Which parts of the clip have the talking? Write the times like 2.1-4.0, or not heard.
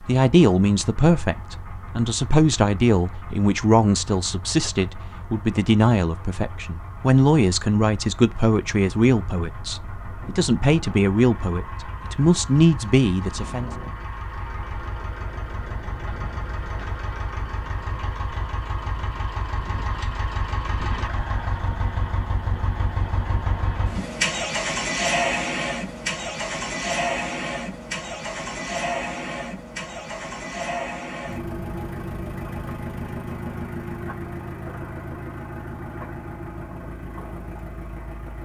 0.1-13.7.